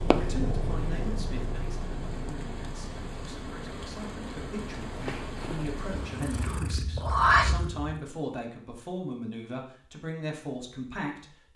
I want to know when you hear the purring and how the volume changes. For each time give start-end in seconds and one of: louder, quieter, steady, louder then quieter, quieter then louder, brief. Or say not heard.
0.0-8.0 quieter then louder.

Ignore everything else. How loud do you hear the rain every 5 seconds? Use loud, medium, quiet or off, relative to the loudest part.
loud, loud, off.